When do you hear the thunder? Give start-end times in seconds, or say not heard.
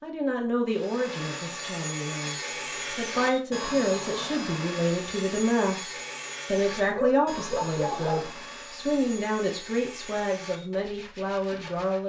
not heard.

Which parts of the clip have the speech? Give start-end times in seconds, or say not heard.
0.0-5.9, 6.5-12.0.